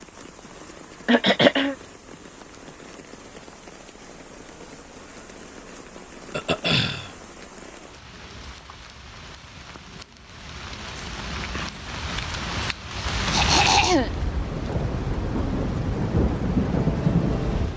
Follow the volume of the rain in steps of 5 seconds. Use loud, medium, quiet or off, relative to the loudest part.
quiet, quiet, medium, loud.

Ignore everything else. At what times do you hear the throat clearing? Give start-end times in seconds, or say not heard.
1.1-1.8, 6.3-7.1, 13.3-14.1.